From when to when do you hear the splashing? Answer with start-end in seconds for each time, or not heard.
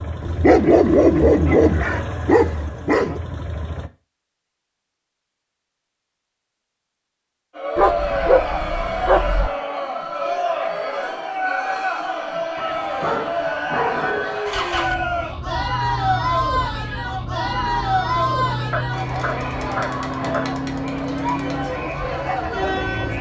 not heard.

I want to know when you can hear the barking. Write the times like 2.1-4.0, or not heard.
0.2-3.2, 7.8-9.5, 12.6-14.4, 18.7-20.4.